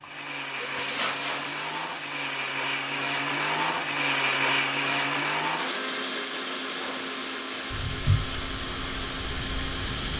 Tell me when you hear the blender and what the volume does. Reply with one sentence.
The blender can be heard from 0.0 to 10.1 s, getting louder then quieter.